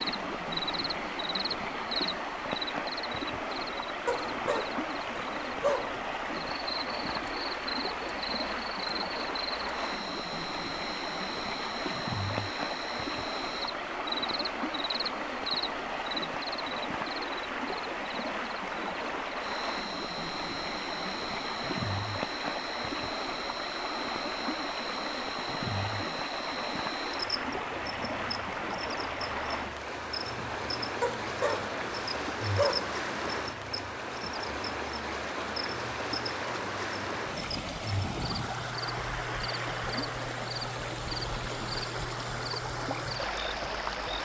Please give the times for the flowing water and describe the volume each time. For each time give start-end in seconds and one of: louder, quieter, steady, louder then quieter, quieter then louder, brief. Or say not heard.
0.0-44.2 steady.